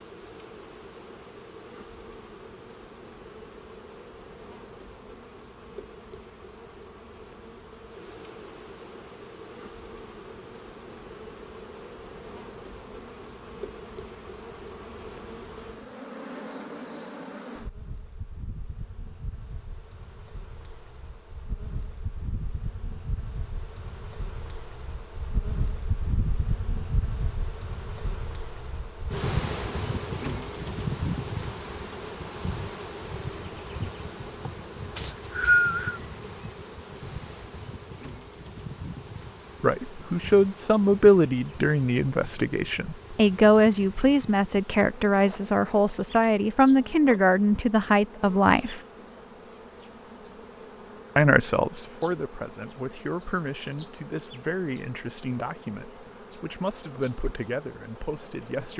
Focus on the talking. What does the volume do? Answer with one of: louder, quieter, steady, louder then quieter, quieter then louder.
quieter.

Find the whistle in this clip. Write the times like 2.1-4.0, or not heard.
35.0-36.0.